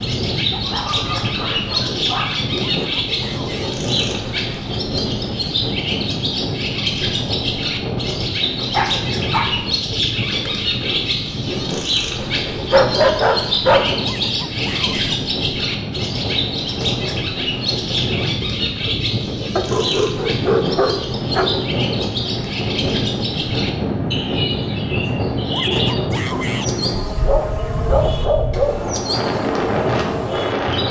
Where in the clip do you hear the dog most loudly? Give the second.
13 s.